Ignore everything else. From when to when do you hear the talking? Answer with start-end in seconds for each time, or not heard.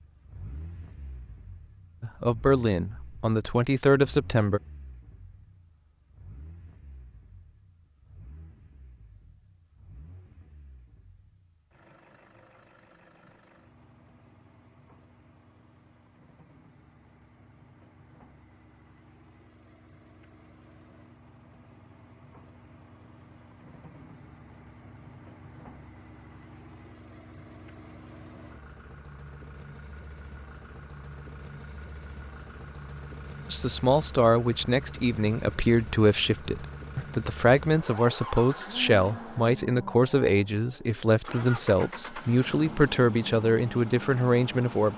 2.0-4.6, 33.5-44.9.